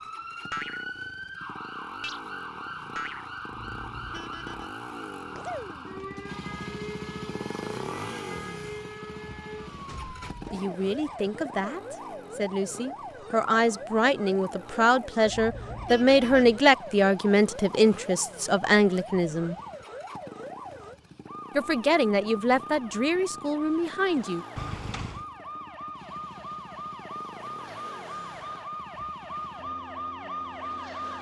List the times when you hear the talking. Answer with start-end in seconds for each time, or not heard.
10.5-19.6, 21.6-24.4.